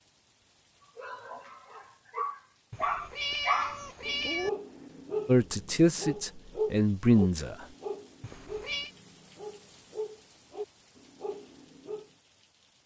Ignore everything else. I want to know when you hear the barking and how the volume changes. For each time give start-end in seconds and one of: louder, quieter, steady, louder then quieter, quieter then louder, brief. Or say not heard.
0.9-12.1 quieter.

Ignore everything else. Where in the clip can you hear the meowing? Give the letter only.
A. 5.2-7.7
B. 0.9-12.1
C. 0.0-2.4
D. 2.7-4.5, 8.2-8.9
D.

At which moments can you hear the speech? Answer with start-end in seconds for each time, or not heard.
5.2-7.7.